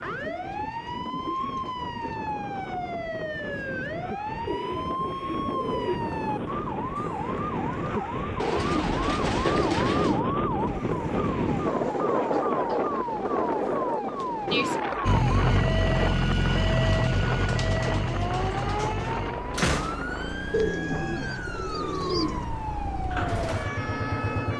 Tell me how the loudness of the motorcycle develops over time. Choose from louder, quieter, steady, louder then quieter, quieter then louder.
quieter then louder.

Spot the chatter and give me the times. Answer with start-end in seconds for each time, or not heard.
not heard.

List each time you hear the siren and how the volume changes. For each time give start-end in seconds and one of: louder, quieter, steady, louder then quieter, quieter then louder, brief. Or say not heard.
0.0-24.5 steady.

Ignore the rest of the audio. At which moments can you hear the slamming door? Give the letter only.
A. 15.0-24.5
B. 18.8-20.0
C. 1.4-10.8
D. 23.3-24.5
B.